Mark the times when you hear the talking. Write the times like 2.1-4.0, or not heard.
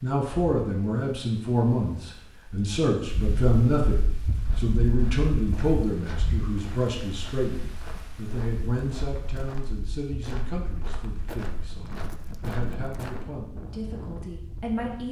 0.0-15.0.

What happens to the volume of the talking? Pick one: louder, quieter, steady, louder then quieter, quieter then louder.
quieter.